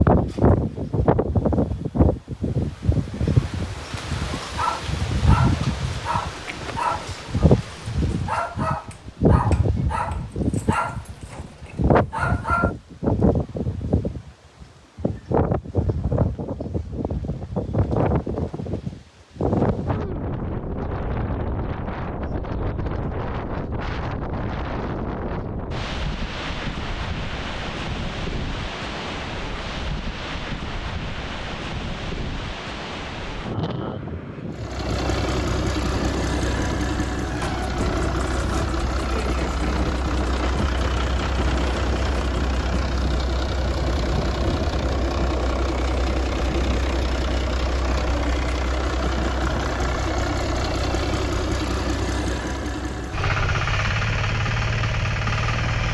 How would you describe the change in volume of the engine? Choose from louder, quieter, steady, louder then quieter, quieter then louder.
steady.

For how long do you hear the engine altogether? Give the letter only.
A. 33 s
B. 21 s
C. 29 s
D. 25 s
B.